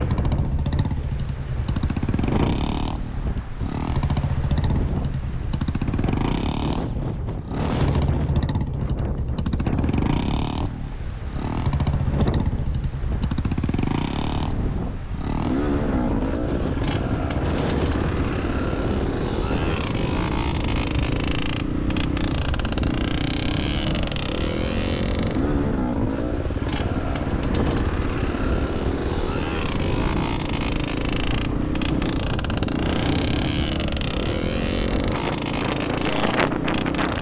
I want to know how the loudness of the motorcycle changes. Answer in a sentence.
The loudness of the motorcycle stays about the same.